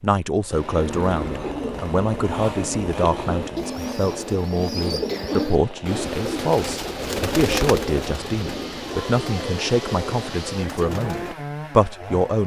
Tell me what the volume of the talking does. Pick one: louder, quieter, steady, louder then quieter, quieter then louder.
steady.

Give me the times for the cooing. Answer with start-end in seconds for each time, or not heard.
0.8-11.3.